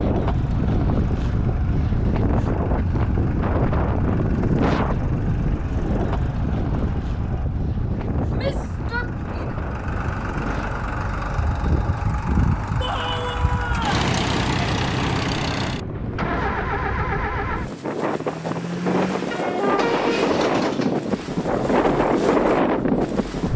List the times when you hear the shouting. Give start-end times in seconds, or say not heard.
8.3-9.6, 12.8-14.1.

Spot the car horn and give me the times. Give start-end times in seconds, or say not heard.
19.3-20.3.